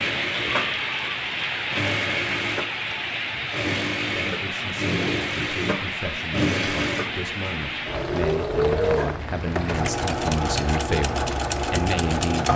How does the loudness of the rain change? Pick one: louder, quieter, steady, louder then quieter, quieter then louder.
quieter.